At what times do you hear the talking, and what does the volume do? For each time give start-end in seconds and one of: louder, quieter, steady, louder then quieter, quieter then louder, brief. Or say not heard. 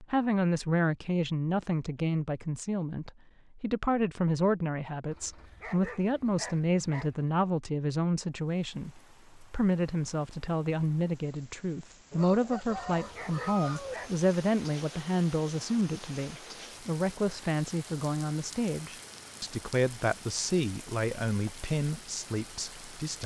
0.0-23.2 steady.